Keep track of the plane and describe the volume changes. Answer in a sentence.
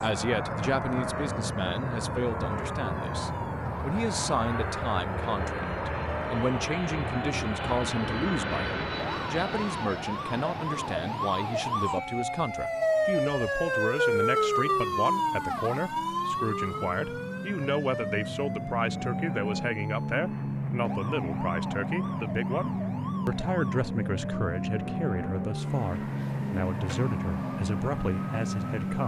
The volume of the plane goes down, then up.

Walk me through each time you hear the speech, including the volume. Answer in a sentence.
You can hear the speech from 0.0 to 29.0 s, at a steady volume.